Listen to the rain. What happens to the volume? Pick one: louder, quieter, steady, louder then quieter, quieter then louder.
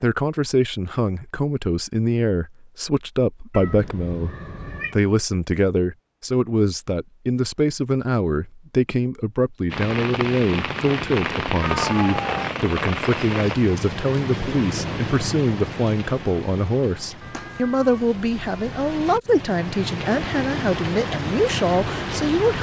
quieter then louder.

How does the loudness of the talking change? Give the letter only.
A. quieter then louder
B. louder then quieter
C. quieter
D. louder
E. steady
E.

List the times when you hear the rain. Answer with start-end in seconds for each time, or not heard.
9.7-22.5.